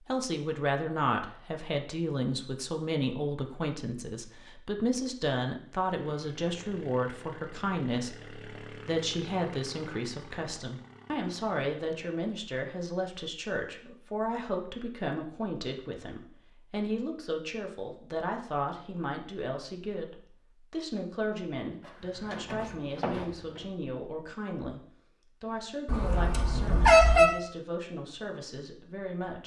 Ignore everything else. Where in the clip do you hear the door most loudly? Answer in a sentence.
The loudest moment of the door is at 23 seconds.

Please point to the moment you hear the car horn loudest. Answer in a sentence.
The loudest moment of the car horn is at 27 seconds.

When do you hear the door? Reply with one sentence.
You can hear the door from 21.8 to 23.7 s.